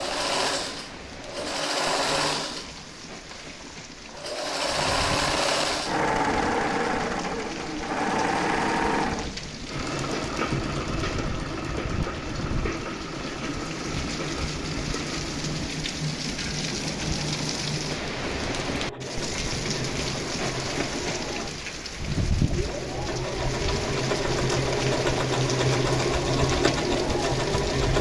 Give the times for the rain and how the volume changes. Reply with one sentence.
You can hear the rain from 0.0 to 27.9 s, getting louder.